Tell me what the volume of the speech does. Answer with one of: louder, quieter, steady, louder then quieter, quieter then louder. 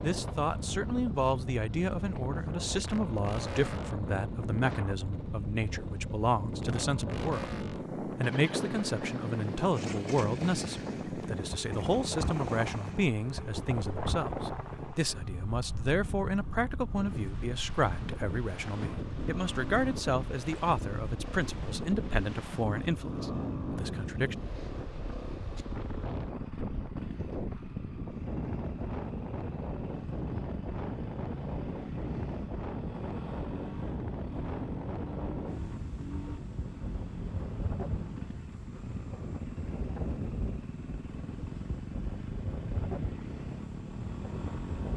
steady.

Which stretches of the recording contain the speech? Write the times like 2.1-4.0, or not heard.
0.0-24.4.